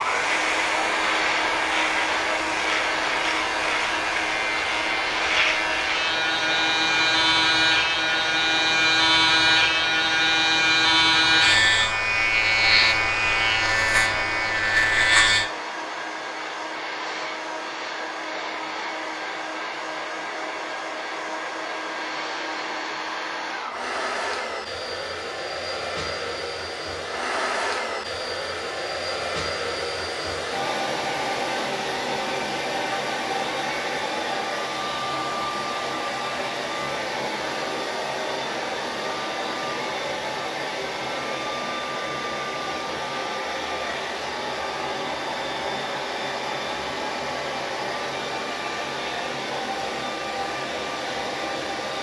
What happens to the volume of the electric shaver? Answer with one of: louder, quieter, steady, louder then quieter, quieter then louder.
louder.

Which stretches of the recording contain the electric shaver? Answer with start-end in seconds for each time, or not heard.
0.0-15.4.